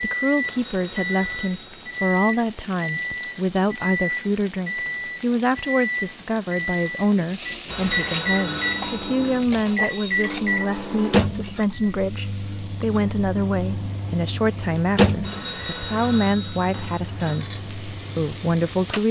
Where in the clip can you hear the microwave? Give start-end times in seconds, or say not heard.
0.0-19.0.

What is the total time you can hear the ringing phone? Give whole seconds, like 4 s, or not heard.
6 s.